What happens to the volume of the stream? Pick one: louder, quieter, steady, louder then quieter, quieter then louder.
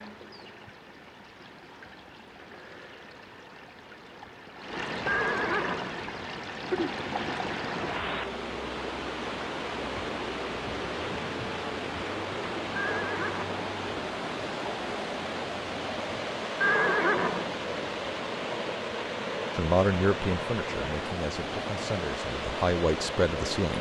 louder.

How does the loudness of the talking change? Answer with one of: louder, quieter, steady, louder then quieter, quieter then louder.
quieter then louder.